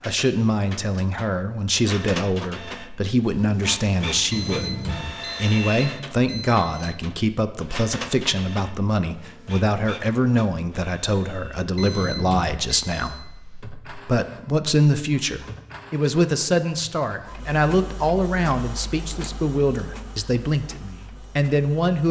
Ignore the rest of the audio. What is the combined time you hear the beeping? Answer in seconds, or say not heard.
4 s.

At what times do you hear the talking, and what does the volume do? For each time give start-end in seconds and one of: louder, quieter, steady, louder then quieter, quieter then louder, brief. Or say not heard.
0.1-22.0 steady.